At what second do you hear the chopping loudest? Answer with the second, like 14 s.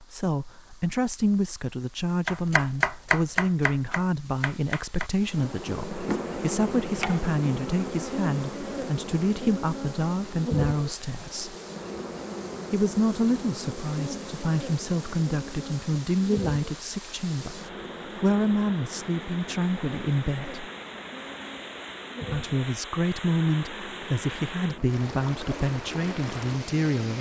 3 s.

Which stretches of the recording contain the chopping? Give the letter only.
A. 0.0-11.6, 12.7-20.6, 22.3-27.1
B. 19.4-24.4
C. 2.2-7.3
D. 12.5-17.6
C.